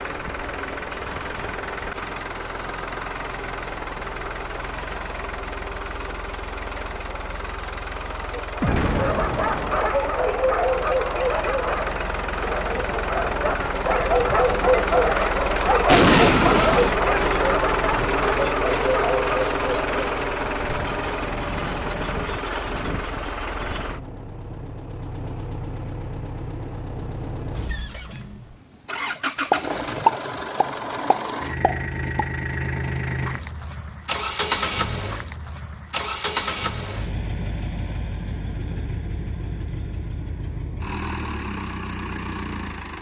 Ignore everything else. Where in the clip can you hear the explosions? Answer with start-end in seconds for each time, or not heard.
8.6-10.0, 15.8-16.9, 29.5-32.2.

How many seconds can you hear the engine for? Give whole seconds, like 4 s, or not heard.
43 s.